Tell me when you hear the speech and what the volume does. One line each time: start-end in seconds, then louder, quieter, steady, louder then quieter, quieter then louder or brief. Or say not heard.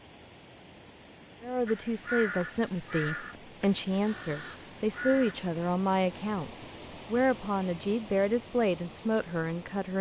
1.4-9.9 steady.